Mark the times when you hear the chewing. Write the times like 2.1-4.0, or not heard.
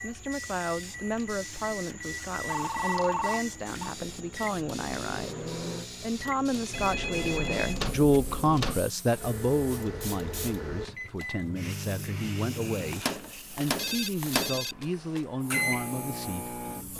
not heard.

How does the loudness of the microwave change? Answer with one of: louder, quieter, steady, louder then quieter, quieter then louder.
louder.